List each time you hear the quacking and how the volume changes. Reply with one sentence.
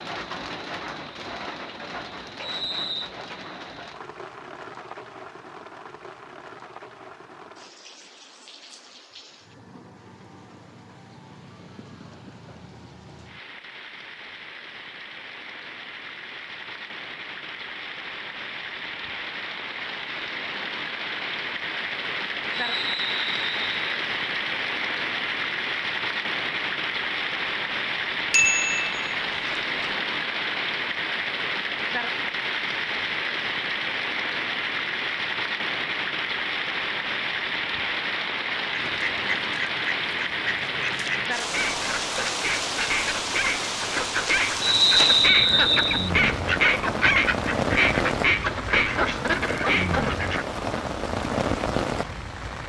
You can hear the quacking from 38.7 to 50.5 s, getting louder.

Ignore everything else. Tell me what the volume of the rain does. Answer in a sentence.
The volume of the rain goes up.